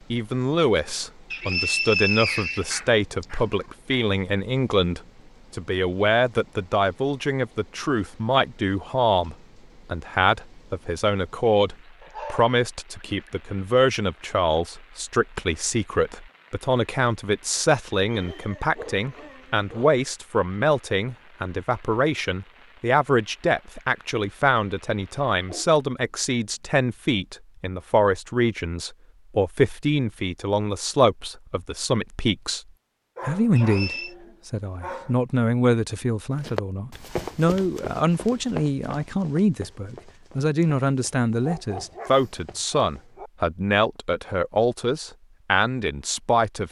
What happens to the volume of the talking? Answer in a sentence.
The loudness of the talking stays about the same.